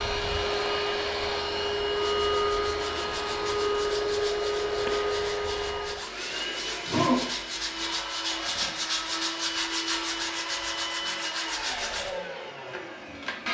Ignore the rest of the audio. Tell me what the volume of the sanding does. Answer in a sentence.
The volume of the sanding goes up.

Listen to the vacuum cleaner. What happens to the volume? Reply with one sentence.
The volume of the vacuum cleaner goes down.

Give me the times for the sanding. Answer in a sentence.
The sanding can be heard from 1.9 to 12.1 s.